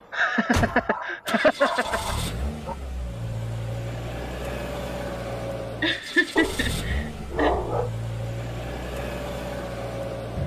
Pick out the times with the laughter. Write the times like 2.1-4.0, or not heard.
0.1-2.1, 5.8-7.5.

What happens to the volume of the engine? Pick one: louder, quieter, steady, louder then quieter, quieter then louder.
steady.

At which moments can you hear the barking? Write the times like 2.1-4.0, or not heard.
0.6-2.8, 6.3-7.9.